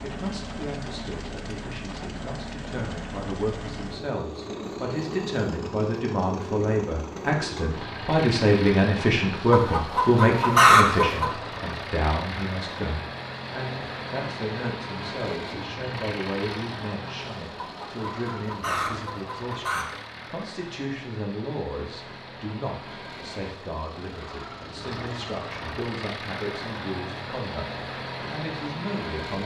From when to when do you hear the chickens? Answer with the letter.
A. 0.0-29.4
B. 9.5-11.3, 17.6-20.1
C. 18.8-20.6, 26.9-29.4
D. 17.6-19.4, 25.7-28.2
B.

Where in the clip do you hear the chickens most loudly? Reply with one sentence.
The loudest moment of the chickens is at 11 seconds.